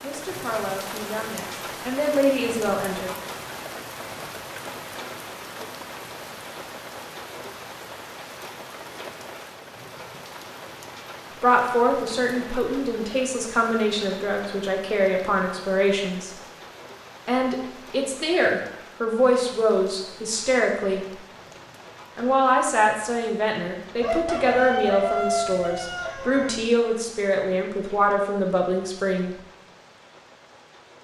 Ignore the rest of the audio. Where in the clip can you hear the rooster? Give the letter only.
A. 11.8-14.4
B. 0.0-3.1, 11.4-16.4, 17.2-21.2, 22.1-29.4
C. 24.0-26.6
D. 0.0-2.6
C.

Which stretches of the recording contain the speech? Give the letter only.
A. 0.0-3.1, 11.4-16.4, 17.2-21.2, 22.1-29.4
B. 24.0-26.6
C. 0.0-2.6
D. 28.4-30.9
A.